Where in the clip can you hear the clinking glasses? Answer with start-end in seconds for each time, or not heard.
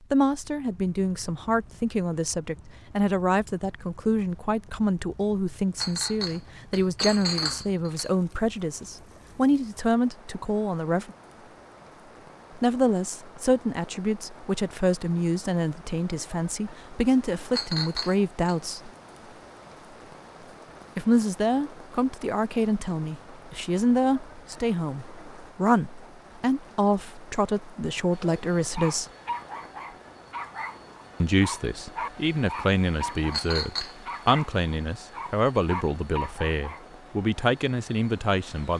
5.8-8.1, 17.5-18.6, 33.3-34.4.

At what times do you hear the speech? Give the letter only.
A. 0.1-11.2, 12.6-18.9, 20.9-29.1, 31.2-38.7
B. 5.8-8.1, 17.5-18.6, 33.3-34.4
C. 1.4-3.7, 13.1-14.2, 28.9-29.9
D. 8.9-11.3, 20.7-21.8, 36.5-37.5
A.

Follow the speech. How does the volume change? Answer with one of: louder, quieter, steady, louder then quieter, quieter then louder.
steady.